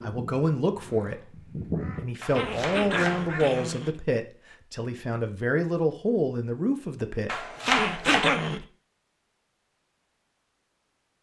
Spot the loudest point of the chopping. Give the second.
8 s.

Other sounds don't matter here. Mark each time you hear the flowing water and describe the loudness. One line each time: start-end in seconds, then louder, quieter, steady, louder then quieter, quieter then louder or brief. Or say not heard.
not heard.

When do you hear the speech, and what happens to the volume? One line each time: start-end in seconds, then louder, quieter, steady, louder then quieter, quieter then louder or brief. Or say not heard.
0.0-7.5 steady.